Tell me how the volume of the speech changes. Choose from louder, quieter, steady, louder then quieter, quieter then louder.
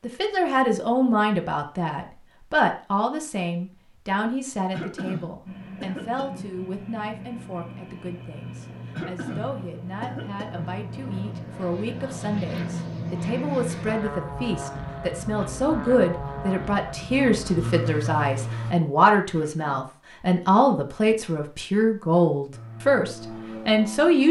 quieter then louder.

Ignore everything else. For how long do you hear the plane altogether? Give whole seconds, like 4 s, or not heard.
15 s.